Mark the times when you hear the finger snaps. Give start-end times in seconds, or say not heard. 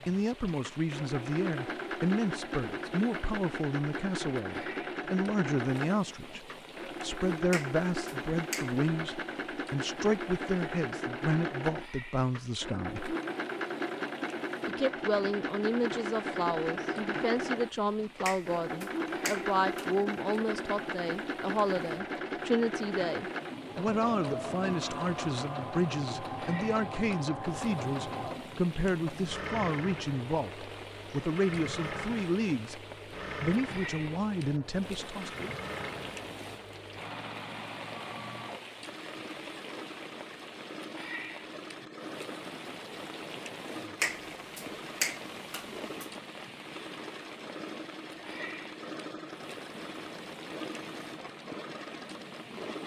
7.5-8.8, 18.2-20.1, 44.0-46.0.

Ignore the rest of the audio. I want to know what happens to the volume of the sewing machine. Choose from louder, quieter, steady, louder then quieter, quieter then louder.
quieter.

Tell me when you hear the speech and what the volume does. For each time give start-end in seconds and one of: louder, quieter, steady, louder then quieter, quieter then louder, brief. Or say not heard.
0.1-13.2 steady
14.7-32.8 steady
33.4-35.5 brief.